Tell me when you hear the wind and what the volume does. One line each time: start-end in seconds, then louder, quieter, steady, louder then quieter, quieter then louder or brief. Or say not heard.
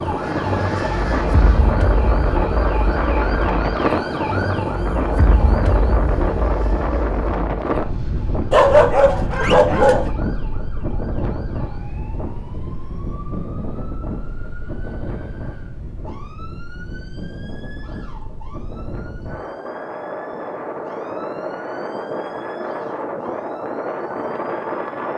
0.0-25.1 quieter then louder.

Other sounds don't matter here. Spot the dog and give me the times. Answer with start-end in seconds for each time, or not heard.
8.5-10.1.